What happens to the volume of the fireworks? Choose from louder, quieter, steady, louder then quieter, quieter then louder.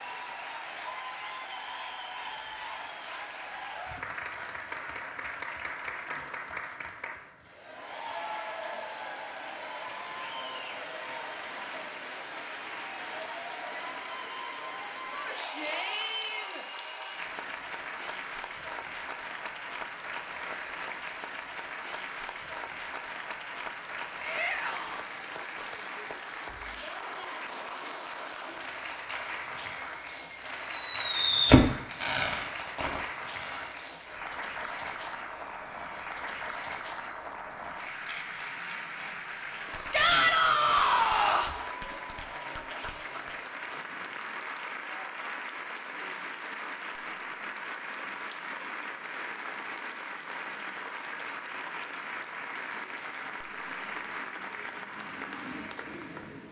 louder then quieter.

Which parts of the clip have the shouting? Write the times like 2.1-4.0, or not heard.
15.1-16.6, 24.2-25.1, 39.9-41.5.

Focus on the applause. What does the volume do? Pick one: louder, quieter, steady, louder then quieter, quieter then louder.
steady.